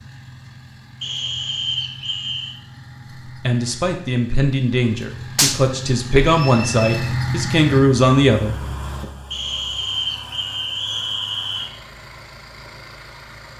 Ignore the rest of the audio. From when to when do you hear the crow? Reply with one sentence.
You can't hear the crow here.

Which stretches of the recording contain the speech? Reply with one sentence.
The speech can be heard from 3.2 to 8.6 s.